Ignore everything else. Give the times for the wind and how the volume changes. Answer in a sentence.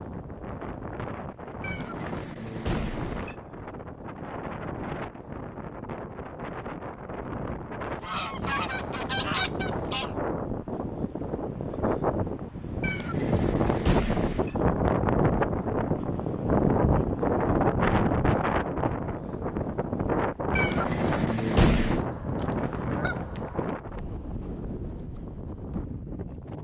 You can hear the wind from 0.0 to 26.6 s, getting louder then quieter.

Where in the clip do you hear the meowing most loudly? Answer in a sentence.
The volume of the meowing peaks at 22 seconds.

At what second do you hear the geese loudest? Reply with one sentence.
The loudest moment of the geese is at 9 seconds.